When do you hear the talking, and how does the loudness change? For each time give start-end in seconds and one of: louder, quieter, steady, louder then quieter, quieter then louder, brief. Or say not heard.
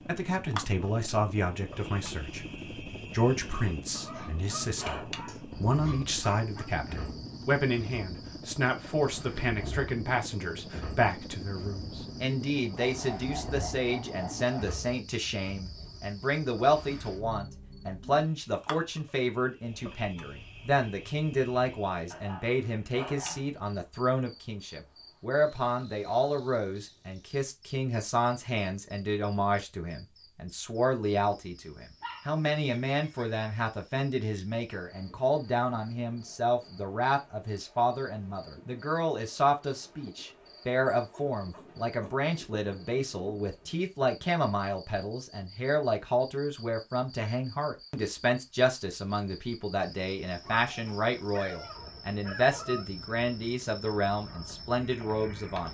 0.1-55.7 steady.